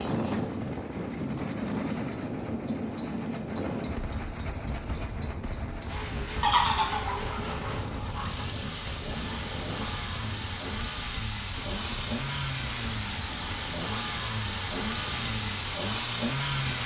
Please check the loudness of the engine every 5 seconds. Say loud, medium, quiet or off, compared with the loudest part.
medium, medium, loud, loud.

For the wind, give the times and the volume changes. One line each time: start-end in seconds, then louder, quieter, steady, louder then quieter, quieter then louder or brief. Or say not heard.
0.0-16.8 quieter.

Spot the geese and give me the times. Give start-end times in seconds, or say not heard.
6.4-8.4.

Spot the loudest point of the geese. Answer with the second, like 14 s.
7 s.